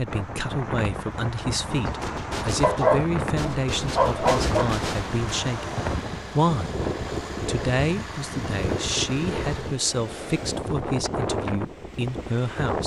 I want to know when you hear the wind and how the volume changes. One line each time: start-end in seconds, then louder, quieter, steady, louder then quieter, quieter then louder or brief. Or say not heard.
0.0-12.8 steady.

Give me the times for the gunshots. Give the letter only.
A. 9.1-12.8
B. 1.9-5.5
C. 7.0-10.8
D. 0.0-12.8
B.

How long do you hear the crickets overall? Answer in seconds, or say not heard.
not heard.